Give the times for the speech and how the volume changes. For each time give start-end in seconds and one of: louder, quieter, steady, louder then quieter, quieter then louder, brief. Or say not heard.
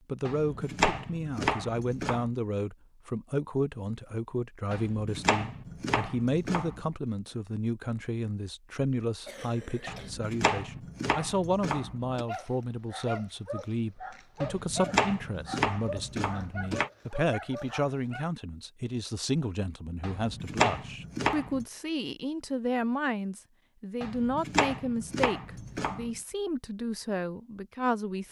0.1-28.2 steady.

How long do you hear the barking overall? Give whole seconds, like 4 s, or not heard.
6 s.